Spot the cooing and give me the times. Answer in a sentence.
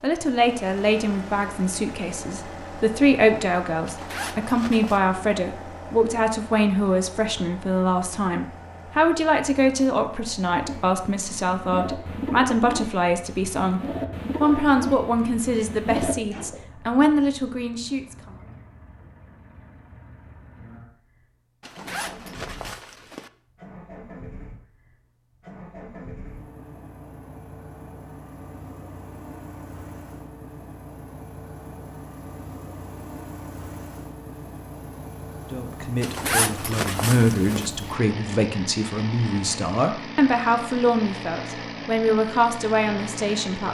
The cooing can be heard from 10.5 to 16.6 s.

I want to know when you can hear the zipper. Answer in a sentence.
You can hear the zipper from 3.9 to 5.0 s, from 21.6 to 23.3 s and from 36.0 to 37.7 s.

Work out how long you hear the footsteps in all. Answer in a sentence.
You can't hear the footsteps here.